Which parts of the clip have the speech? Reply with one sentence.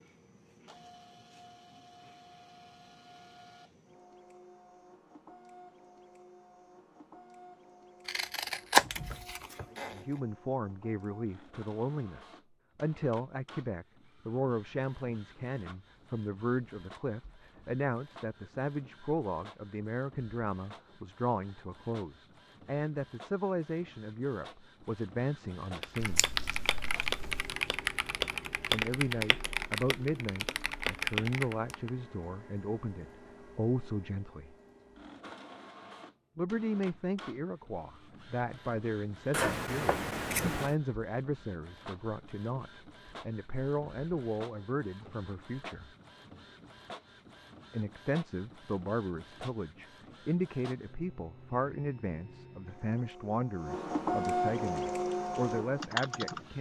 The speech can be heard from 9.7 to 26.2 s, from 28.7 to 34.5 s, from 36.4 to 45.9 s and from 47.7 to 56.5 s.